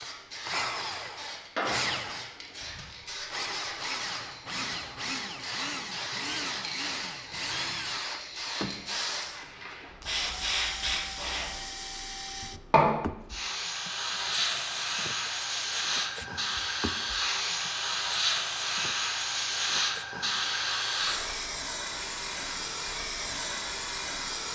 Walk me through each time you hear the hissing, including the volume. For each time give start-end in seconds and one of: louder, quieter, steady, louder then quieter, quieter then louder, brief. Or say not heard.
0.0-24.5 louder.